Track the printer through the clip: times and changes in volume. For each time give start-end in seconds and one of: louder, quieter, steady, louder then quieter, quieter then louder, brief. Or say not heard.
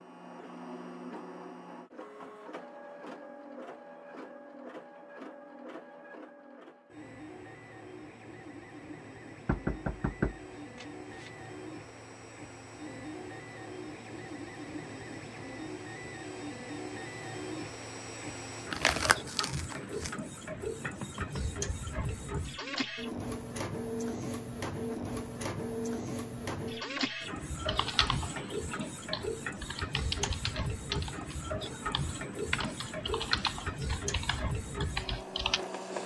0.0-36.0 louder.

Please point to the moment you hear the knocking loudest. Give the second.
10 s.